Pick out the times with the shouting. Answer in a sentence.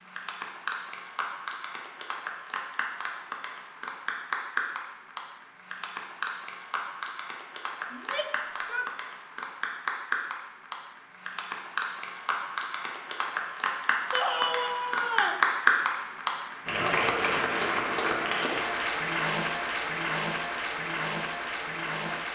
The shouting can be heard from 7.9 to 8.9 s and from 14.1 to 15.4 s.